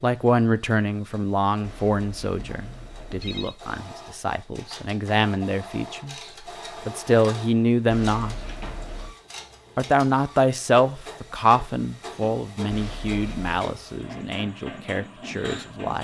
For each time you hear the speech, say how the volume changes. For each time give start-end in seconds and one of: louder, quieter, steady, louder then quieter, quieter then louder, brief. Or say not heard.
0.0-6.2 quieter then louder
6.8-8.3 brief
9.8-16.0 quieter.